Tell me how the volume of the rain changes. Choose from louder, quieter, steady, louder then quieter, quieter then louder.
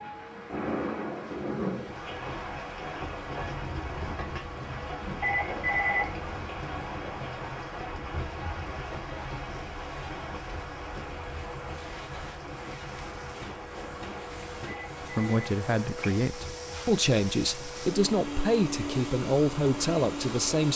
quieter.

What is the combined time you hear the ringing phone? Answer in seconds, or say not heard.
2 s.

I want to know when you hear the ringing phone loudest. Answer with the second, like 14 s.
6 s.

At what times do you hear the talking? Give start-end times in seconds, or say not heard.
15.2-20.7.